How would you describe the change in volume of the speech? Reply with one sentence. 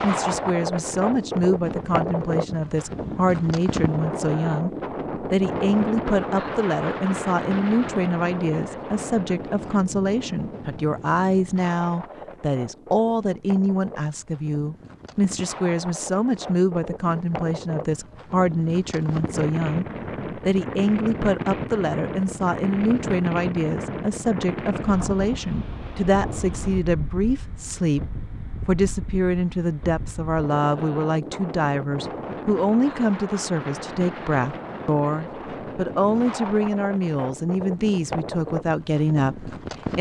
The volume of the speech stays about the same.